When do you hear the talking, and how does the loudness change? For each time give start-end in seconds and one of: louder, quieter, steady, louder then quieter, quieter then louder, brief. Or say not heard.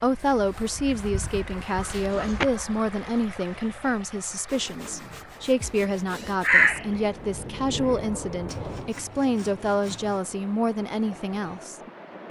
0.0-12.2 steady.